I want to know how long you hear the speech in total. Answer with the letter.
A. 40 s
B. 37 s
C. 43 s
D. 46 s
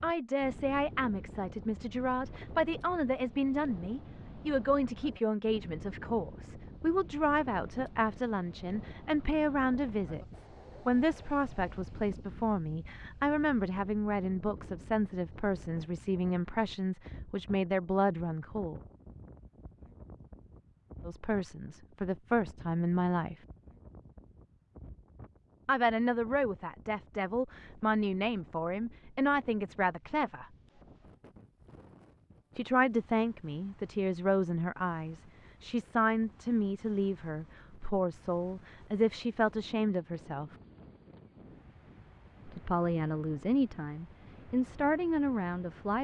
B.